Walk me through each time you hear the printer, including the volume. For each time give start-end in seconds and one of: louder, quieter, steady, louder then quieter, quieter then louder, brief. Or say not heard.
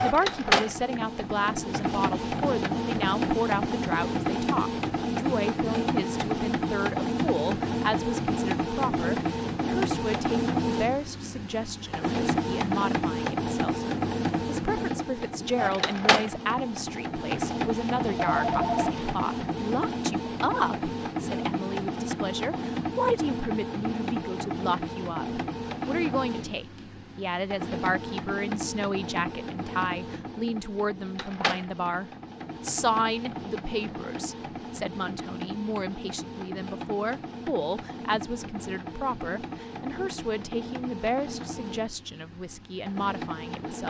0.0-43.8 quieter.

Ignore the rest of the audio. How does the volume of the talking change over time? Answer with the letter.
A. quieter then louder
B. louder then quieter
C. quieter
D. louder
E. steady
E.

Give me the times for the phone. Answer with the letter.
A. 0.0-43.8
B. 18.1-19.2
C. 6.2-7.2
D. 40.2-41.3
B.